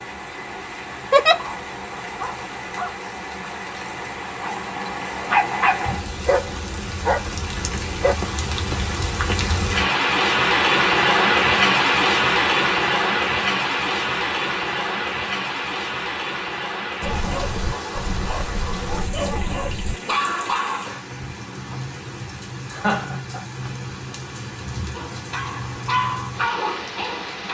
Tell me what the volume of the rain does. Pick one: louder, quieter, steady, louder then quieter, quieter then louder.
louder then quieter.